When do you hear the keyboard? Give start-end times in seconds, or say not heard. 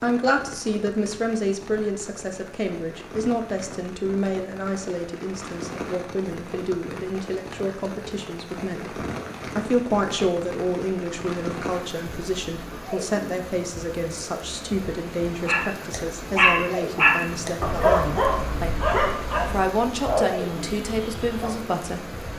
not heard.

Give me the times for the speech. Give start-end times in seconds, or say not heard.
0.0-22.2.